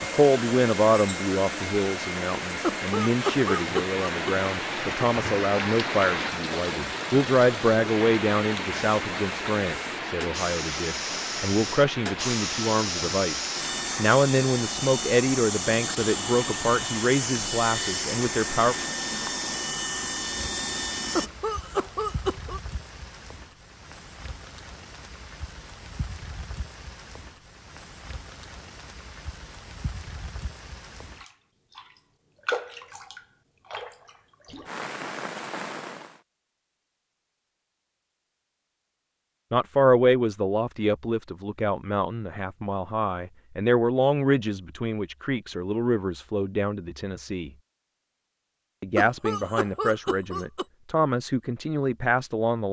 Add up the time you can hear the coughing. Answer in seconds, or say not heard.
5 s.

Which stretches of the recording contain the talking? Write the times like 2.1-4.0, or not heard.
0.0-18.8, 39.5-47.5, 48.8-52.6.